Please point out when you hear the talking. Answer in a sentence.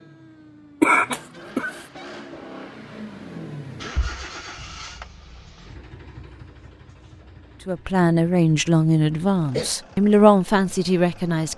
The talking can be heard from 7.7 to 11.5 s.